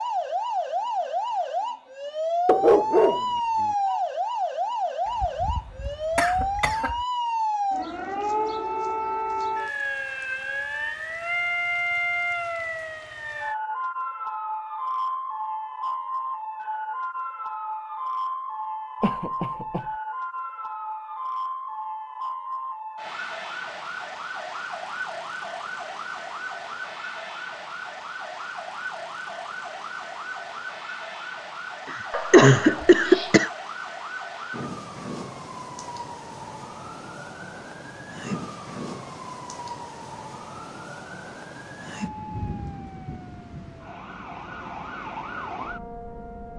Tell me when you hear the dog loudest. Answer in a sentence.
The volume of the dog peaks at 3 seconds.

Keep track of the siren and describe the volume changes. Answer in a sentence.
The volume of the siren goes down.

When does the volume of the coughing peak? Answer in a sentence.
The loudest moment of the coughing is at 33 seconds.